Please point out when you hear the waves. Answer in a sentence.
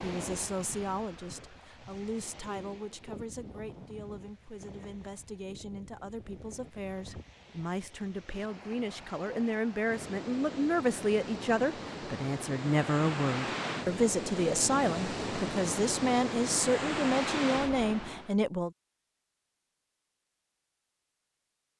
You can hear the waves from 0.0 to 18.4 s.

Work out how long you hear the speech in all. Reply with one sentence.
The speech can be heard for 19 seconds in total.